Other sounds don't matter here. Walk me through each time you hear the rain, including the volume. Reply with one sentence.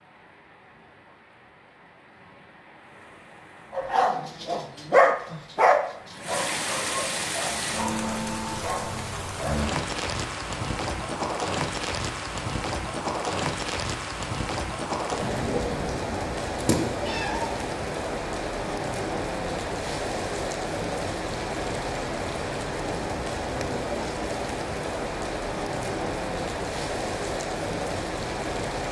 You can hear the rain from 0.0 to 28.8 s, getting louder.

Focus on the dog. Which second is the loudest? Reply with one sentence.
The volume of the dog peaks at 5 seconds.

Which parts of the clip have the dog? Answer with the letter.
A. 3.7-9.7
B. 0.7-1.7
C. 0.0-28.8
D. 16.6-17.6
A.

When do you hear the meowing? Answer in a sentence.
The meowing can be heard from 16.6 to 17.6 s.